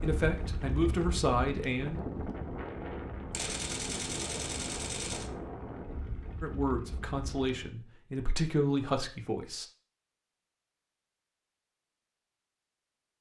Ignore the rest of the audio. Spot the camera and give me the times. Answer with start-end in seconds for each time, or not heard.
3.3-5.3.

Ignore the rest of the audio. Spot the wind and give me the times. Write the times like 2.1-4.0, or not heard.
0.0-7.7.